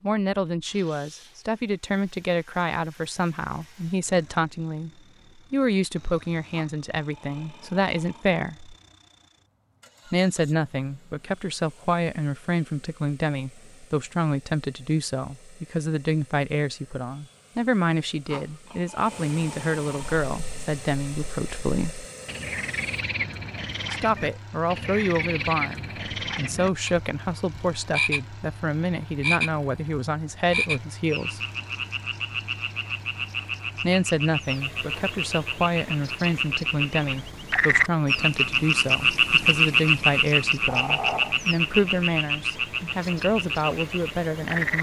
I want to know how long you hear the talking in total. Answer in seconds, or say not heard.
39 s.